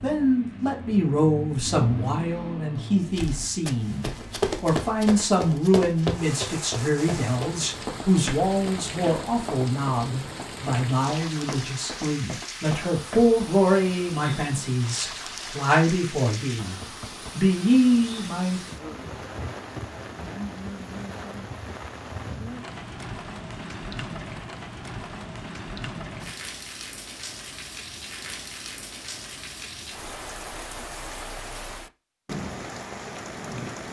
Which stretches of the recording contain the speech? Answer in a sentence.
The speech can be heard from 0.0 to 18.6 s.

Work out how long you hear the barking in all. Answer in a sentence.
The barking can't be heard in this clip.